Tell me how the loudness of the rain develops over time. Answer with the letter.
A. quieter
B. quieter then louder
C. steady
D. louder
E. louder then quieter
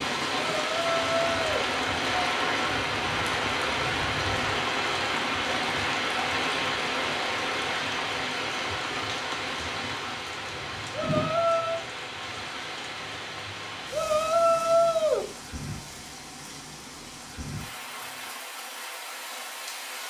A.